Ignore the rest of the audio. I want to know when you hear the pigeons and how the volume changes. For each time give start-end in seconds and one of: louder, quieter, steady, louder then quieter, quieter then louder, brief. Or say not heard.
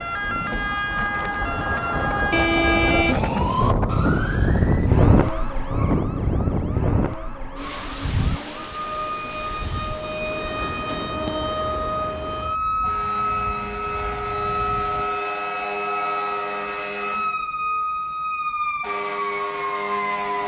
not heard.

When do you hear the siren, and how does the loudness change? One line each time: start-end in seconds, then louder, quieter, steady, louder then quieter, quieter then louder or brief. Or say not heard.
0.0-20.4 quieter then louder.